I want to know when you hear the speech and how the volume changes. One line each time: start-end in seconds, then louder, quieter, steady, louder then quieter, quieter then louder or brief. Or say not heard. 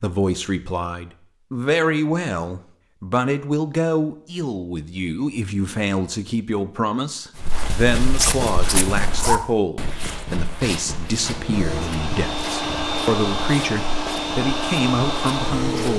0.0-15.9 steady.